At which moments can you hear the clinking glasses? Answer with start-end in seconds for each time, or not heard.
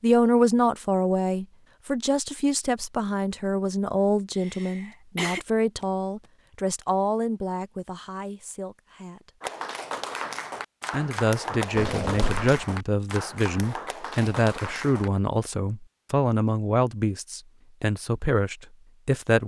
not heard.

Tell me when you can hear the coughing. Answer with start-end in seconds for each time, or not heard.
4.3-5.4, 11.8-12.5.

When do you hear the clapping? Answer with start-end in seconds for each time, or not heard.
9.4-15.1.